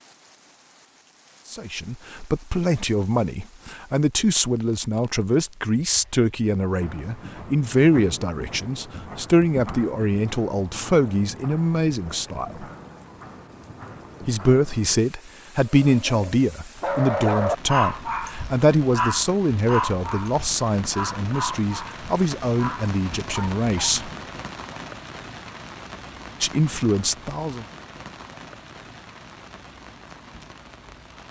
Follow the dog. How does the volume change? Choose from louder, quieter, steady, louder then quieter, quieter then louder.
quieter.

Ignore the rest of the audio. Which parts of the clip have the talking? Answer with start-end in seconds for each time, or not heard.
1.5-12.7, 14.2-24.1, 26.4-27.6.